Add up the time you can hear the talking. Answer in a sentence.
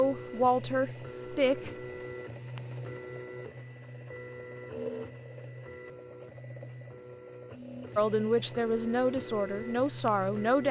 The talking can be heard for 4 seconds in total.